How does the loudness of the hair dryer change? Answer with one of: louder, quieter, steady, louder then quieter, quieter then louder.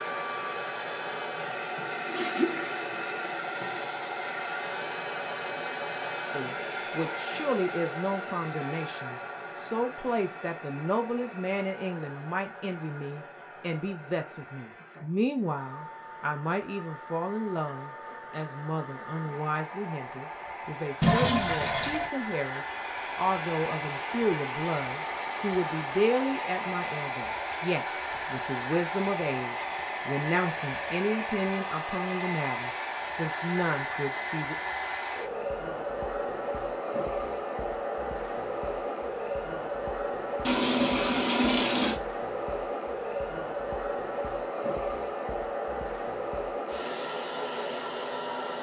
quieter then louder.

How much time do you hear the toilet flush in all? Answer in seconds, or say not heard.
5 s.